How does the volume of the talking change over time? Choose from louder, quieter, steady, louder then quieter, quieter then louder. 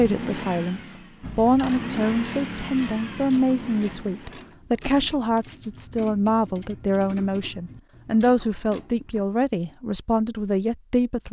steady.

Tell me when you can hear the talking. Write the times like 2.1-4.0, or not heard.
0.0-11.2.